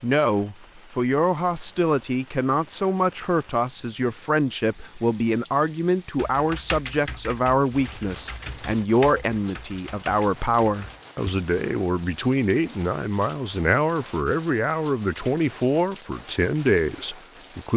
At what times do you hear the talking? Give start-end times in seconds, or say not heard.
0.0-17.7.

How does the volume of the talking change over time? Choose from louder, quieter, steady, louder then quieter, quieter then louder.
steady.